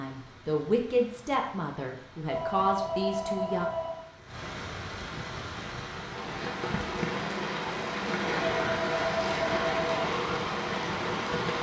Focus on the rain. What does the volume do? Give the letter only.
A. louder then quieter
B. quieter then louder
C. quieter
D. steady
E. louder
E.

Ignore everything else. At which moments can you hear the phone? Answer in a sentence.
You can hear the phone from 2.2 to 4.0 s and from 8.4 to 10.1 s.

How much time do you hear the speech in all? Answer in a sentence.
You can hear the speech for 4 seconds altogether.